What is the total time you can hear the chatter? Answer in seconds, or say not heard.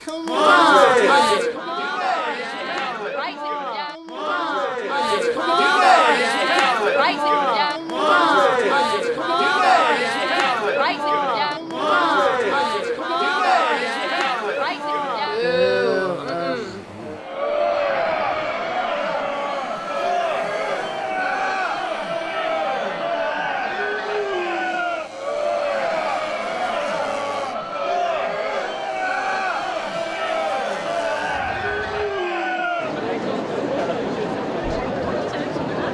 36 s.